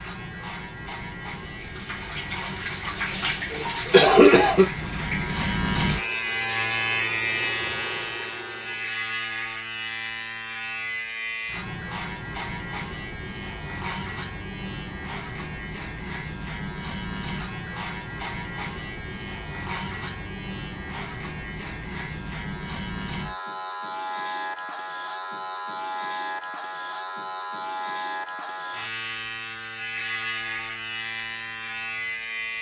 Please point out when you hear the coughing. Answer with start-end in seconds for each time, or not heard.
3.5-4.7.